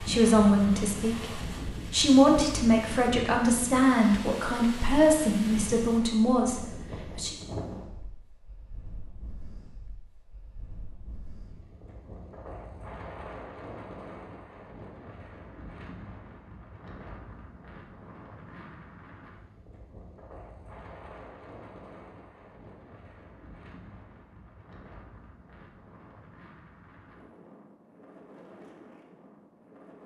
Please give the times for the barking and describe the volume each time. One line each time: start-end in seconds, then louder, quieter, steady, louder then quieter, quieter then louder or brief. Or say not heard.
not heard.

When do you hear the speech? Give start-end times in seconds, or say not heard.
0.0-7.3.